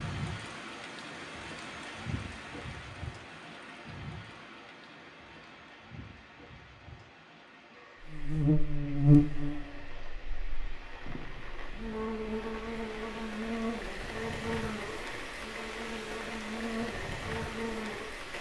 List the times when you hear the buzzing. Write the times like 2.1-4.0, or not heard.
8.1-18.2.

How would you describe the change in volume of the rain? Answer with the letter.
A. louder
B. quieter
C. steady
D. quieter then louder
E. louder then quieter
D.